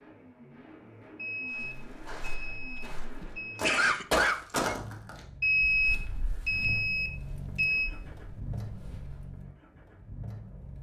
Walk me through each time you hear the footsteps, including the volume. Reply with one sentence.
You can hear the footsteps from 1.5 to 9.4 s, getting louder then quieter.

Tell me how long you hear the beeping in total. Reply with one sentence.
The beeping can be heard for 5 seconds in total.